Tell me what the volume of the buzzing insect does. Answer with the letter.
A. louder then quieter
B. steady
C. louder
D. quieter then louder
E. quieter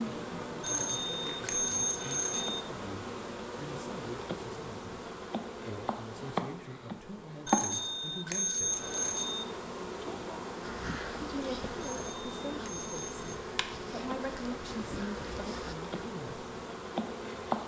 B.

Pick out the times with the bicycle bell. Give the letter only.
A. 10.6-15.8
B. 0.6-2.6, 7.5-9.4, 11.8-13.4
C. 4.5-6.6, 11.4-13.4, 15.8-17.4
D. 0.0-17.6
B.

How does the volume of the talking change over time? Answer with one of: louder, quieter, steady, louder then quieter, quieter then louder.
louder.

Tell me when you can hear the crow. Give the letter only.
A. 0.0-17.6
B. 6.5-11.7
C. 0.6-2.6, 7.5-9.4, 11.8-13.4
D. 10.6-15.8
D.